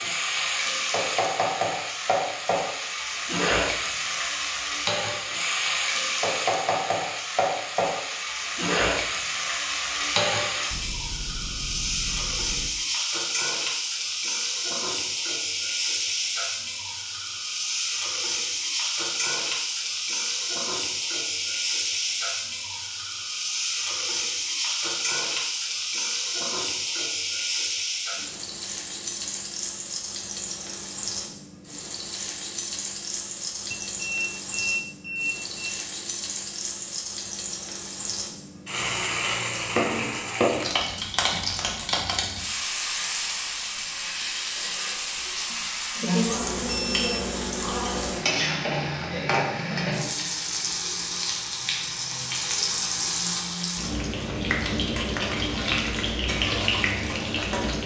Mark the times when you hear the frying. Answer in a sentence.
The frying can be heard from 0.0 to 57.8 s.